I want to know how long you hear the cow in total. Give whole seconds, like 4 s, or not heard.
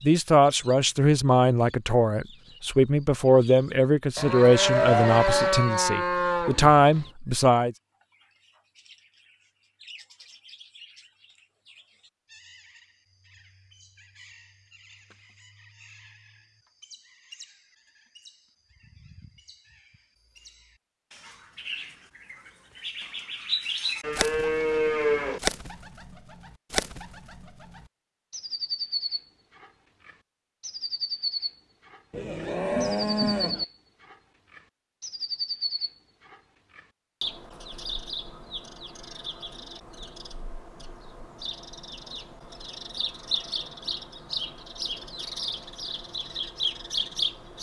6 s.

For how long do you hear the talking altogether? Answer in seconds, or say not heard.
8 s.